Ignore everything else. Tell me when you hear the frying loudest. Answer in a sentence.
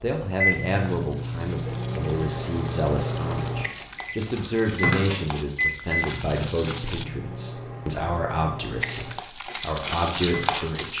The volume of the frying peaks at 10 seconds.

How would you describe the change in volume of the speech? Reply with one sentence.
The volume of the speech stays about the same.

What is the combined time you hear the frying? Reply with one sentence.
You can hear the frying for 9 seconds altogether.